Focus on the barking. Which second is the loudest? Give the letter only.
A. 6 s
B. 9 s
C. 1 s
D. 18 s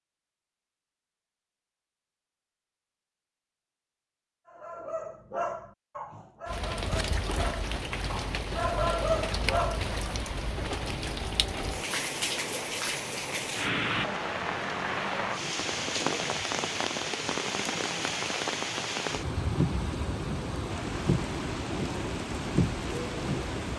B.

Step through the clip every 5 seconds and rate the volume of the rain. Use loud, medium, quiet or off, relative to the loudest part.
off, loud, loud, loud, loud.